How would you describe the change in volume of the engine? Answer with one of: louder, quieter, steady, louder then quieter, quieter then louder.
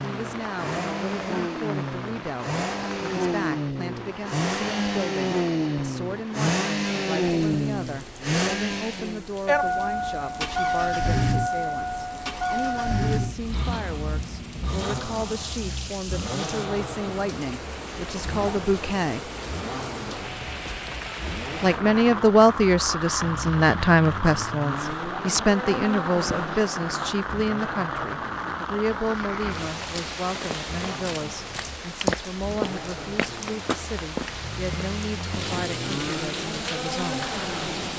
quieter.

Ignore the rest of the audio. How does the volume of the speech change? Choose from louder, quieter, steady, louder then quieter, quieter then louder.
louder then quieter.